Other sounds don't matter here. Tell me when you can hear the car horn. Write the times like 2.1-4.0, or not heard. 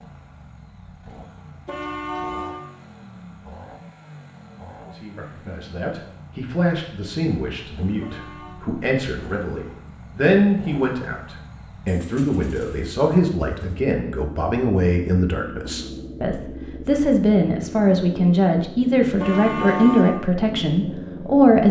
1.6-2.6, 8.0-8.6, 19.1-20.2.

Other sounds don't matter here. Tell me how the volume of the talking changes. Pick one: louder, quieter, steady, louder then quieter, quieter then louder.
louder.